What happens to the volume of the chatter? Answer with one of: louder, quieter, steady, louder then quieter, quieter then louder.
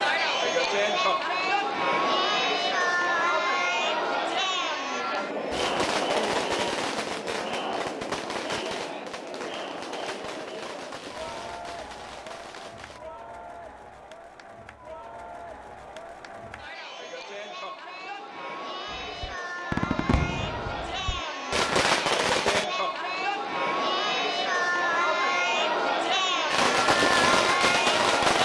quieter then louder.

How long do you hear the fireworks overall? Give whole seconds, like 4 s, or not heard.
13 s.